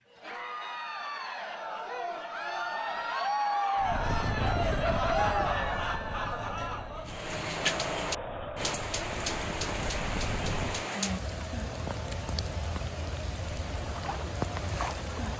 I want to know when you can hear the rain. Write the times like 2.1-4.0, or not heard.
7.0-15.3.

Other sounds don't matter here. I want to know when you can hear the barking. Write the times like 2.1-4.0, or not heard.
not heard.